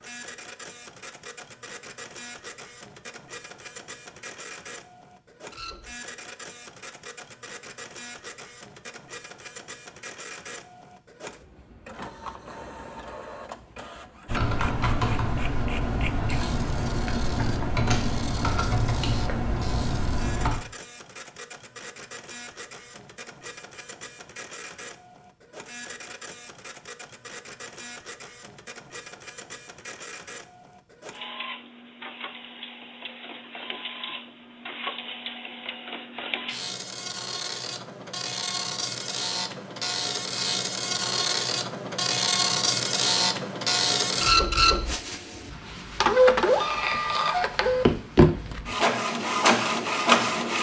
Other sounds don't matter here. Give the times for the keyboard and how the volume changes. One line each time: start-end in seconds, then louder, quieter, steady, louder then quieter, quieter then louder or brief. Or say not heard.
14.2-20.6 steady.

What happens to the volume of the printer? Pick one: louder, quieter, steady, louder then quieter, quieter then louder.
louder.